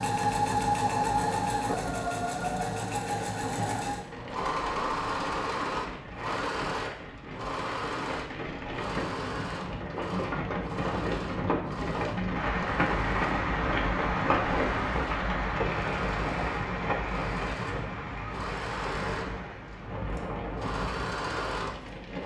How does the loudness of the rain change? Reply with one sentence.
The loudness of the rain goes up, then down.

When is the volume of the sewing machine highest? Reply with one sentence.
The volume of the sewing machine peaks at 1 second.